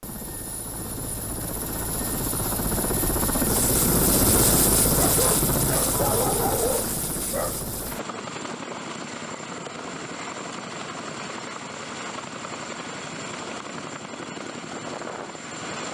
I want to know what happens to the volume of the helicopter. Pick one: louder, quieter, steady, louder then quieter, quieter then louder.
louder then quieter.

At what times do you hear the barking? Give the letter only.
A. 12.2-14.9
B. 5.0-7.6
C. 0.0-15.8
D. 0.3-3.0
B.